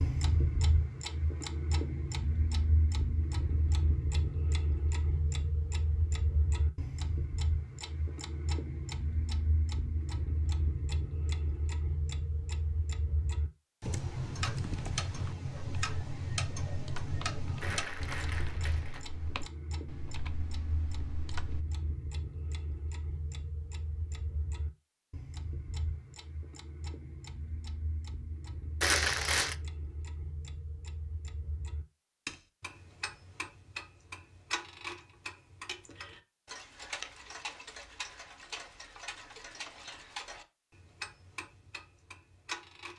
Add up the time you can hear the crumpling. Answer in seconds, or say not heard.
2 s.